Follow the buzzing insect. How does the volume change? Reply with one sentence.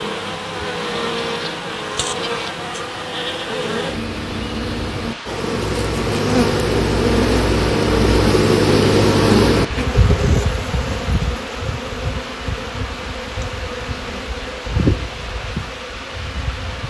The loudness of the buzzing insect goes up, then down.